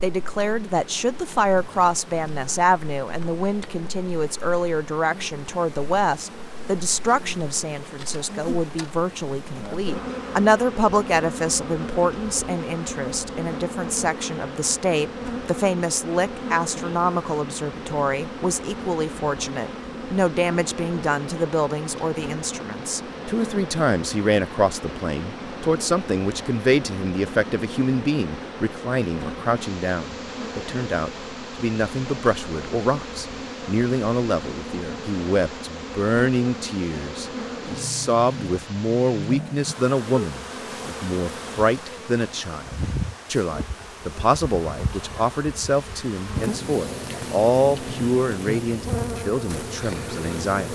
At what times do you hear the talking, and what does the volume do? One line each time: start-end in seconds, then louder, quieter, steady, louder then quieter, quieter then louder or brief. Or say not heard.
0.0-50.7 steady.